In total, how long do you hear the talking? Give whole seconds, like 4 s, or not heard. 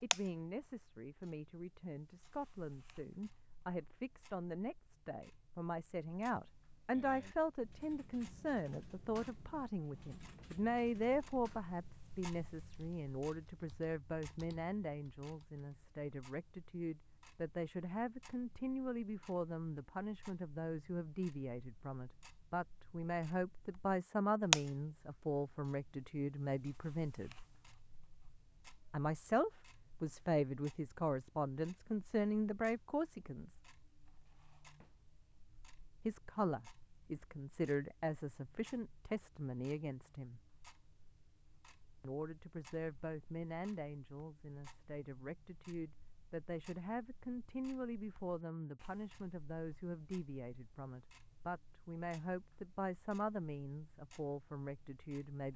50 s.